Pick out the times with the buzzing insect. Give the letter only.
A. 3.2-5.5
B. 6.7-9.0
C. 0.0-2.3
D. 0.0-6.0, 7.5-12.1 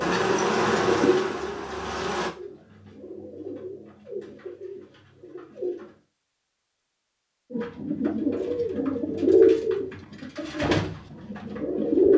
C.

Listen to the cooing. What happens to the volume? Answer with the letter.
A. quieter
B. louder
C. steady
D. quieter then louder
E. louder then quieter
D.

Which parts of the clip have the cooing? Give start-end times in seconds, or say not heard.
0.0-6.0, 7.5-12.1.